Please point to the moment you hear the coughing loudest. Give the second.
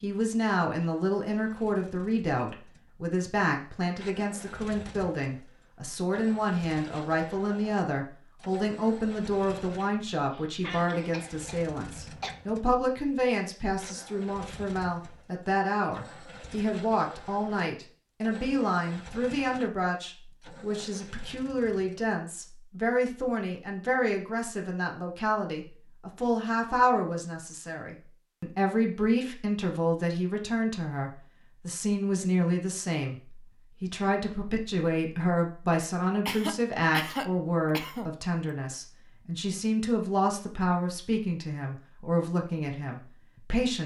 37 s.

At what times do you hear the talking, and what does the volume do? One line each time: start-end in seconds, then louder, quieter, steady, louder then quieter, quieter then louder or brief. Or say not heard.
0.0-43.8 steady.